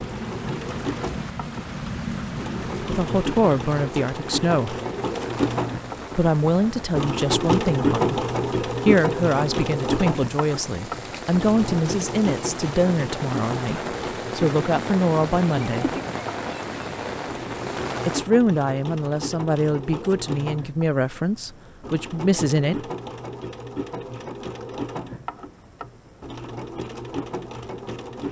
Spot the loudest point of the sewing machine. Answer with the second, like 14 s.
8 s.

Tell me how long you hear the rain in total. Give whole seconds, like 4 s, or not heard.
18 s.